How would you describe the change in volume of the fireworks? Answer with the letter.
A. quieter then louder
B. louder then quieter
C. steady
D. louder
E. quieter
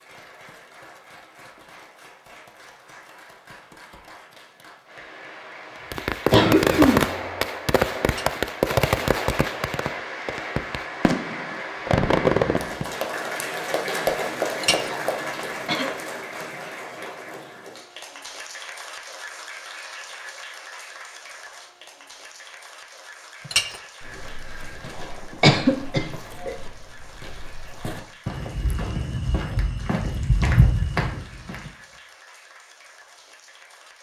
A.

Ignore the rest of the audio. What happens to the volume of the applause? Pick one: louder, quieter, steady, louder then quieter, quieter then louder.
louder then quieter.